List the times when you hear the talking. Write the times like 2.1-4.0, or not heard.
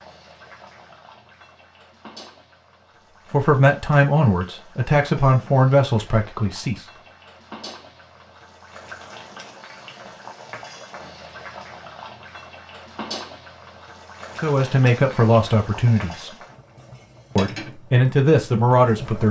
3.3-6.8, 14.4-16.4, 17.4-19.2.